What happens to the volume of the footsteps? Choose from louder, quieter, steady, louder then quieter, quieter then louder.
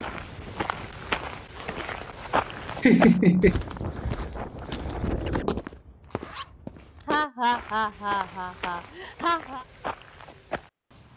quieter.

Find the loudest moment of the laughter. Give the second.
3 s.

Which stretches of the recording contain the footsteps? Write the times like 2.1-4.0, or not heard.
0.0-11.1.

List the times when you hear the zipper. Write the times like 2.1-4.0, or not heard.
1.6-2.4, 6.1-7.0.